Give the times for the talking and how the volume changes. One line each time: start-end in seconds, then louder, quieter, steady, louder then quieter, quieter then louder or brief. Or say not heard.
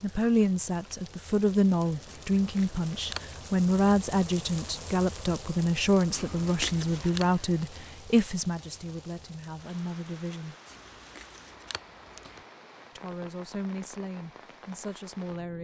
0.0-10.6 quieter
12.9-15.5 brief.